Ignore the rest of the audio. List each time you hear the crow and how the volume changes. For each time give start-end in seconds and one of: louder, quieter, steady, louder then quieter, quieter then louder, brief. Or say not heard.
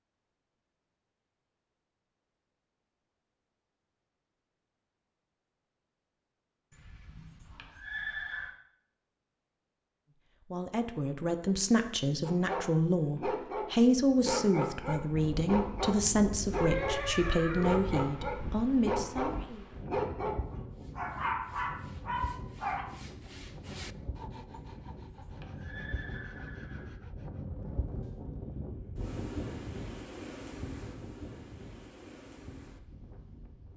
not heard.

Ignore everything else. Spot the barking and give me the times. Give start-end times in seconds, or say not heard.
12.2-22.9.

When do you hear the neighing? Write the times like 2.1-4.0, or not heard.
6.7-8.6, 16.5-17.8, 24.5-26.9.